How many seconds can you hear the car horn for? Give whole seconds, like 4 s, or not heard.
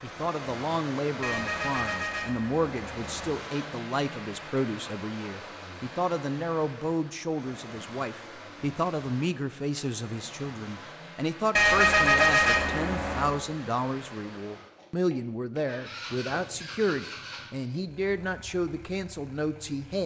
4 s.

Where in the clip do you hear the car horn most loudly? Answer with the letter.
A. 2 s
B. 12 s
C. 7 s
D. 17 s
B.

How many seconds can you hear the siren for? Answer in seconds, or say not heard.
not heard.